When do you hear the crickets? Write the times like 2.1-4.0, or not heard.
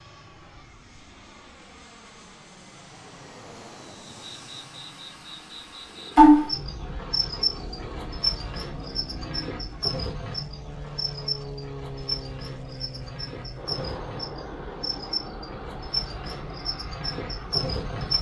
4.2-18.1.